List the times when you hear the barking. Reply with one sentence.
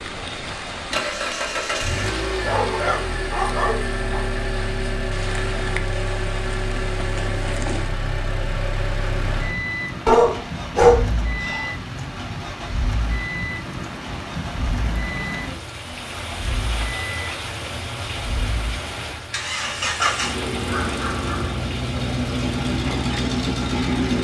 You can hear the barking from 2.4 to 4.2 s, from 10.1 to 11.7 s and from 20.0 to 21.6 s.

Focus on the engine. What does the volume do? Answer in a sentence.
The volume of the engine goes down, then up.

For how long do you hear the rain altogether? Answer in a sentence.
The rain can be heard for 24 seconds in total.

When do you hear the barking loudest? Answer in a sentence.
The loudest moment of the barking is at 11 seconds.